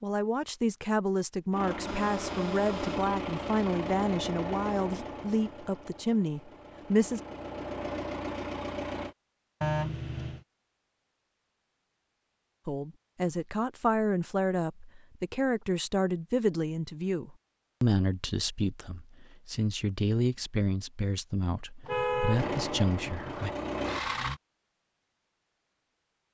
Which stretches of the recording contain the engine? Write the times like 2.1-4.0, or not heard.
1.5-9.2, 22.3-24.4.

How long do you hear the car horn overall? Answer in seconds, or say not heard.
4 s.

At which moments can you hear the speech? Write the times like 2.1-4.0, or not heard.
0.0-7.2, 12.7-23.5.